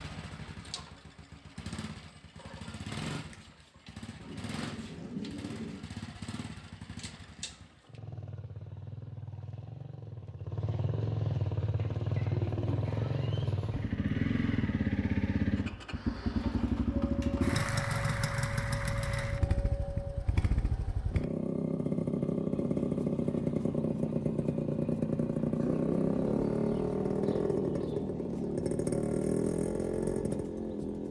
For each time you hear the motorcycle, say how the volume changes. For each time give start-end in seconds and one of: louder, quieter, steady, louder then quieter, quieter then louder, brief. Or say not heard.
0.0-31.0 louder.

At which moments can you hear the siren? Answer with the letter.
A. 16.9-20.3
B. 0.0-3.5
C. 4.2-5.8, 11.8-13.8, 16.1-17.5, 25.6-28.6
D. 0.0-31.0
A.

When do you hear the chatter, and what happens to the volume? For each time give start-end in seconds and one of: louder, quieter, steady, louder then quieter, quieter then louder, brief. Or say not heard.
not heard.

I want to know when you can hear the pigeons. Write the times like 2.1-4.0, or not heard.
4.2-5.8, 11.8-13.8, 16.1-17.5, 25.6-28.6.